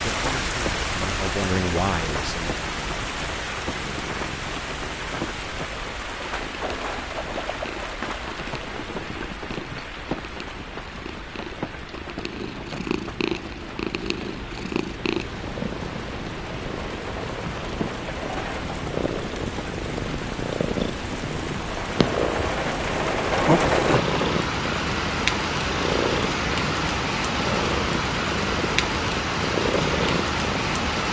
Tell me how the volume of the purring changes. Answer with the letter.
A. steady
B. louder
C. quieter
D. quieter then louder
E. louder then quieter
B.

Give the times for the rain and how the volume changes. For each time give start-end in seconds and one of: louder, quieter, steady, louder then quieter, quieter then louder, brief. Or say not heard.
0.0-31.0 quieter then louder.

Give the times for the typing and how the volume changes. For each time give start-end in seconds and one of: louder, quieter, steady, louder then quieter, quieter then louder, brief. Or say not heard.
not heard.